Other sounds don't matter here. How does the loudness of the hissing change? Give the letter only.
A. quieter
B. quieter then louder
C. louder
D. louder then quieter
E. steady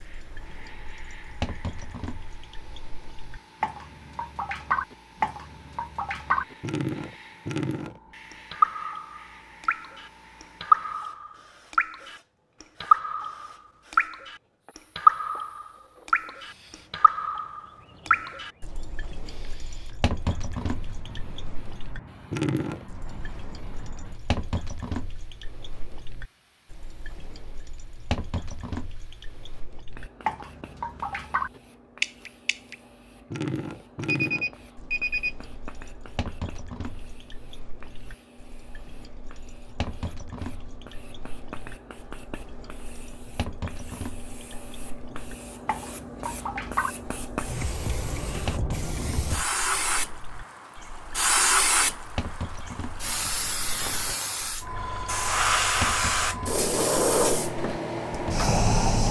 C.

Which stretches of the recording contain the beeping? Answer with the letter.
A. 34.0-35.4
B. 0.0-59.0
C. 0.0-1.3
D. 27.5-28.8
A.